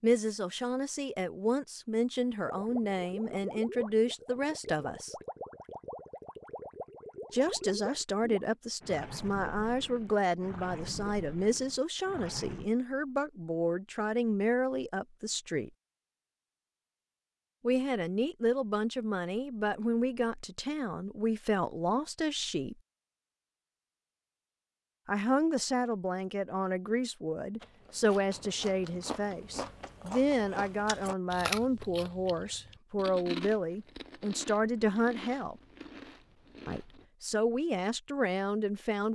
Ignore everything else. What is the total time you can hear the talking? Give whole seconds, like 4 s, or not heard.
32 s.